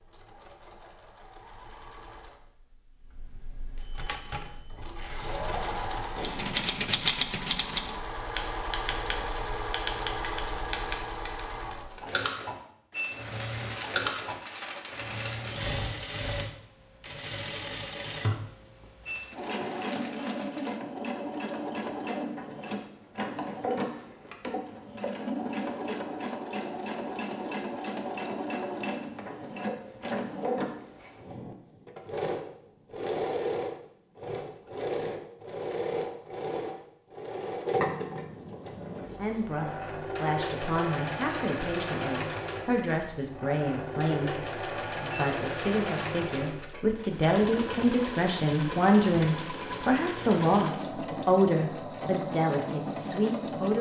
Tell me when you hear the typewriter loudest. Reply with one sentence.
The volume of the typewriter peaks at 7 seconds.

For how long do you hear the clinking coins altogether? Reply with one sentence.
You can hear the clinking coins for 6 seconds altogether.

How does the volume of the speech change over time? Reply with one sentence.
The loudness of the speech goes up.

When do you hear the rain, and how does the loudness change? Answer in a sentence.
The rain can't be heard in this clip.